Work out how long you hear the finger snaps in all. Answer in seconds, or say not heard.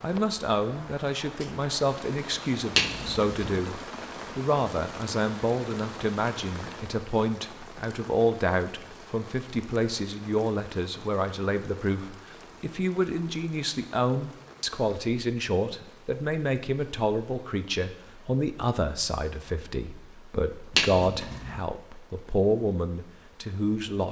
2 s.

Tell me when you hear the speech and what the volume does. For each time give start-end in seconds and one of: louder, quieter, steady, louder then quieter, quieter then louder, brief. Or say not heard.
0.0-24.0 steady.